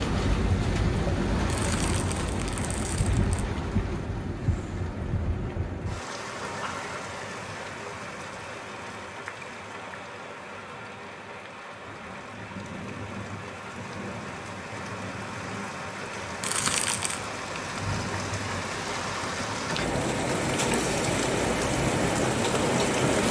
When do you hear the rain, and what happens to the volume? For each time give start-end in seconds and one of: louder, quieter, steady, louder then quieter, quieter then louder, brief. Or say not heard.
0.0-23.2 quieter then louder.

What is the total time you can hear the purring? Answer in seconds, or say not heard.
not heard.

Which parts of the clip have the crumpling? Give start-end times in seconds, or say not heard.
1.4-3.5, 16.4-17.2.